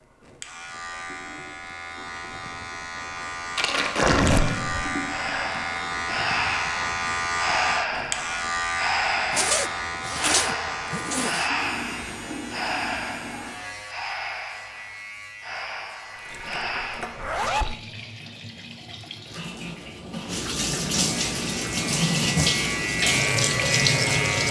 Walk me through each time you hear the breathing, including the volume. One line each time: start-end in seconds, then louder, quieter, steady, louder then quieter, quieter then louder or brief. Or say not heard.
5.0-17.2 quieter.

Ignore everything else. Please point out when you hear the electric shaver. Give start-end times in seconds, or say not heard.
0.0-17.4, 20.9-24.4.